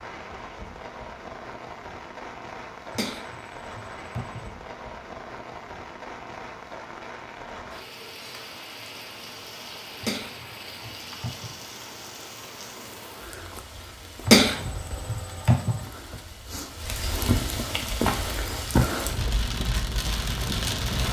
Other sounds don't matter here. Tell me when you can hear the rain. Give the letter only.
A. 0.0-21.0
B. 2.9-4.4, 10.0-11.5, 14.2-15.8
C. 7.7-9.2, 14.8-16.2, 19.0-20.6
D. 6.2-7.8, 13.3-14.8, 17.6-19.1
A.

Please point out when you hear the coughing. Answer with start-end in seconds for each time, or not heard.
2.9-4.4, 10.0-11.5, 14.2-15.8.